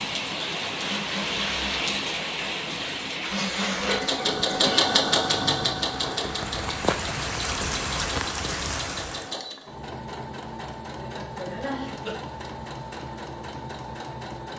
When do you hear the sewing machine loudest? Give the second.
5 s.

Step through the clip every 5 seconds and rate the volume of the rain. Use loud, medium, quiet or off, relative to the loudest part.
loud, loud, off.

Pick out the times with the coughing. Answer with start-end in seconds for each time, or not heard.
3.4-4.8, 10.9-12.2.